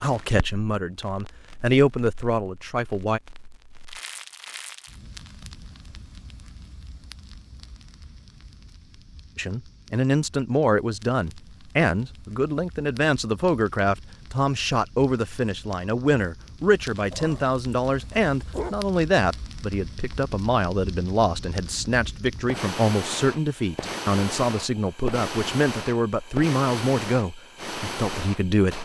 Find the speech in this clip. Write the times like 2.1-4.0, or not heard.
0.0-3.2, 9.3-28.7.